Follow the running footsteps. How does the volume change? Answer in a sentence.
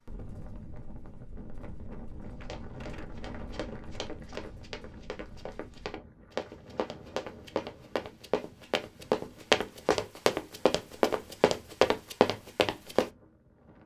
The volume of the running footsteps goes up.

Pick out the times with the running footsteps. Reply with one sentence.
The running footsteps can be heard from 2.2 to 13.1 s.